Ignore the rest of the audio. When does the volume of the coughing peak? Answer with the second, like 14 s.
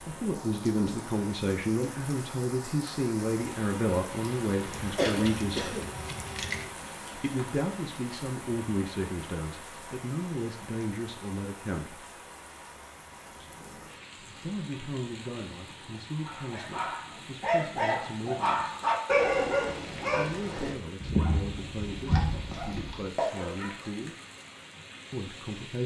5 s.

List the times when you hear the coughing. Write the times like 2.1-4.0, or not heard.
5.0-6.7.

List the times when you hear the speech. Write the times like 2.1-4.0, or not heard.
0.1-5.8, 7.2-12.0, 14.2-18.8, 20.1-24.1, 25.1-25.8.